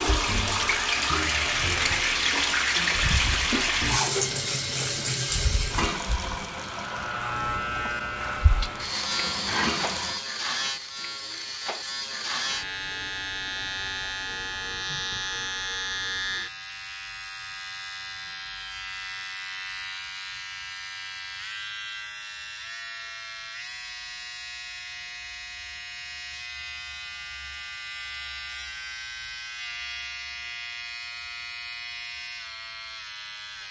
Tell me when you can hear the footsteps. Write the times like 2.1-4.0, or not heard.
not heard.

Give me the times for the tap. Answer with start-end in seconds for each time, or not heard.
0.0-10.2.